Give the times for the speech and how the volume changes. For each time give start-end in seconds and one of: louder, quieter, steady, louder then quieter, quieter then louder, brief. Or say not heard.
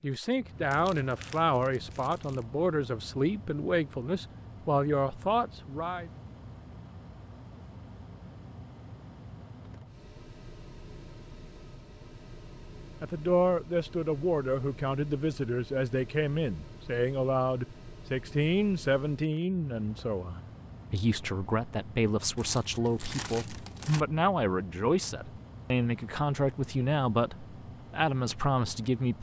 0.0-6.1 steady
13.0-29.1 steady.